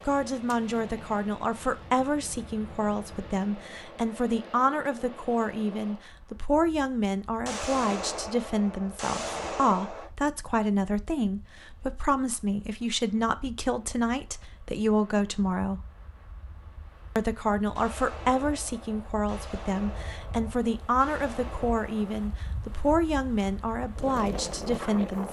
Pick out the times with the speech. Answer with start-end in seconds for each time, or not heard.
0.1-15.8, 17.1-25.2.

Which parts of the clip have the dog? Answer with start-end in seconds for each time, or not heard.
not heard.